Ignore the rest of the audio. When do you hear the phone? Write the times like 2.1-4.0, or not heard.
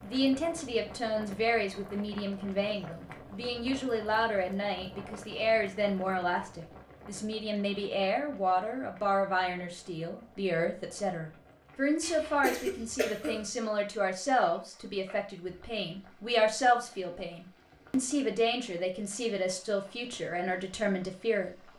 not heard.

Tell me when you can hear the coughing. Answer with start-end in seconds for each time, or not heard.
12.0-13.4.